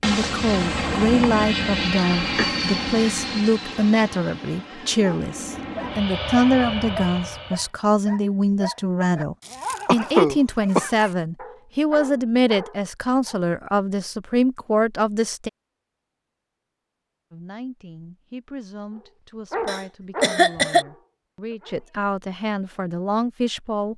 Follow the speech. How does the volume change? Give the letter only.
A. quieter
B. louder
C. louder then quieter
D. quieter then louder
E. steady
A.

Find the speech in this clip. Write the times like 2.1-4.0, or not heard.
0.0-15.5, 17.3-23.9.